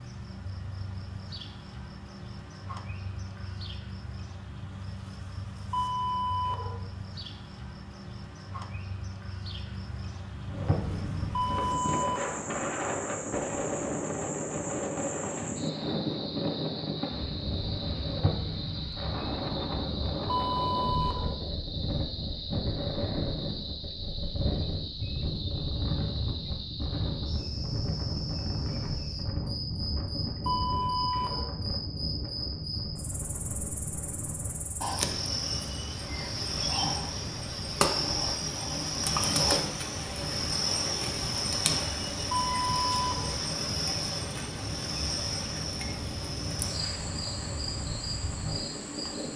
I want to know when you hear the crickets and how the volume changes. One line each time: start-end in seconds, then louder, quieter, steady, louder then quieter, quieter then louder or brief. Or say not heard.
0.0-49.3 louder.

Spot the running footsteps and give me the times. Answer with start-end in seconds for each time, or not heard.
not heard.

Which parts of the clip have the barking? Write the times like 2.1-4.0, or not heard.
5.7-6.8, 11.3-12.4, 20.2-21.4, 30.4-31.5, 42.3-43.4.